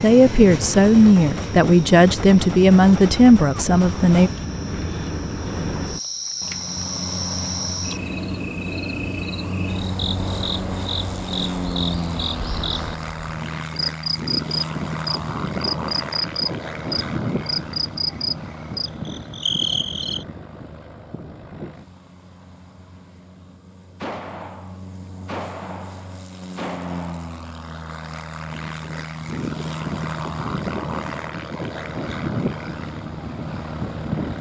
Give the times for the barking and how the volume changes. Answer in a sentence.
The barking can't be heard in this clip.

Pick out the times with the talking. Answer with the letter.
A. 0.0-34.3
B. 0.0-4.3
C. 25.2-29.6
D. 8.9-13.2
B.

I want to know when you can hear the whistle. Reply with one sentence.
The whistle can't be heard in this clip.